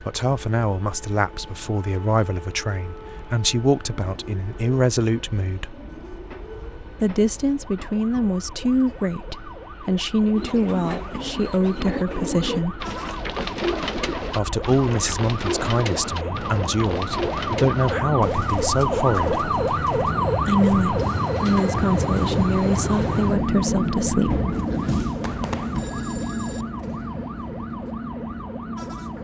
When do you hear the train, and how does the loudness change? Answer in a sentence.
The train can be heard from 0.0 to 29.1 s, getting louder.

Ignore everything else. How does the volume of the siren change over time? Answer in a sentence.
The loudness of the siren goes up, then down.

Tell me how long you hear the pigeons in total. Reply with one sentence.
You can hear the pigeons for 10 seconds altogether.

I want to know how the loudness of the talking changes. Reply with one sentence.
The volume of the talking stays about the same.